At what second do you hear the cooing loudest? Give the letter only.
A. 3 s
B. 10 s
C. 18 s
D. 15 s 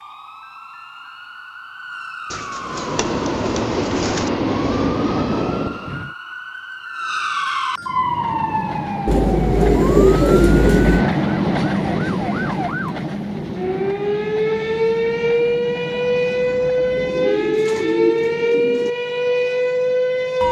B.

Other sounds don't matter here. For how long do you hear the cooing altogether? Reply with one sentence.
The cooing can be heard for 6 seconds in total.